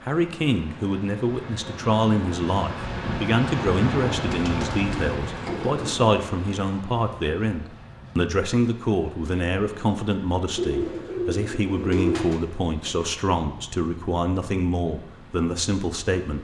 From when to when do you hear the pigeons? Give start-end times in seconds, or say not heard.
4.1-6.2, 10.6-12.4.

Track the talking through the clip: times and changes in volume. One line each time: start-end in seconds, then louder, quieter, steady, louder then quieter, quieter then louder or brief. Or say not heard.
0.0-16.3 steady.